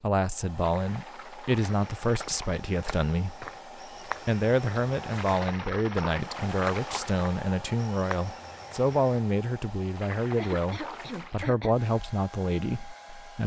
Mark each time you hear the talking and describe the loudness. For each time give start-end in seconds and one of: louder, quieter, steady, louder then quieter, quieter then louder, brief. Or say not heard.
0.0-13.4 steady.